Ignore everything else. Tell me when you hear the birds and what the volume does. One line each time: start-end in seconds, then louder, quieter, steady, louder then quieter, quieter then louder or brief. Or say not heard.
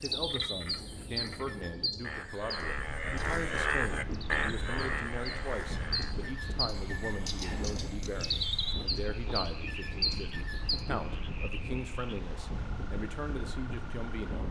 0.0-10.8 quieter then louder.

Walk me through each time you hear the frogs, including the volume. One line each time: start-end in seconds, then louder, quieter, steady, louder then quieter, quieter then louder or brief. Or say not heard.
0.0-14.2 louder then quieter.